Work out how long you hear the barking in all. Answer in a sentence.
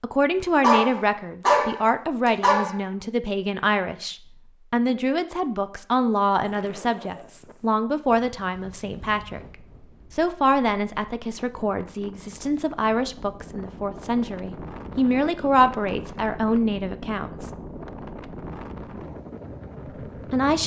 You can hear the barking for 2 seconds altogether.